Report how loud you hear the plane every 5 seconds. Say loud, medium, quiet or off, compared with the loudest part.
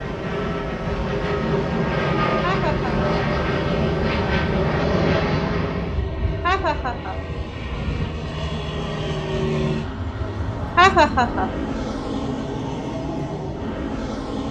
loud, loud, medium.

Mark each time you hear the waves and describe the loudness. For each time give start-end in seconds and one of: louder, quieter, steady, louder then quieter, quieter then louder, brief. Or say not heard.
not heard.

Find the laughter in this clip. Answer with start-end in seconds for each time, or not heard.
2.4-2.9, 6.4-7.2, 10.8-11.5.